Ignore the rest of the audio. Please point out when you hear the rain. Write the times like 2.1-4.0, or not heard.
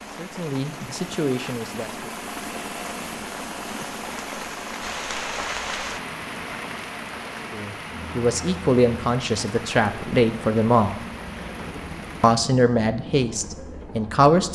0.0-12.4.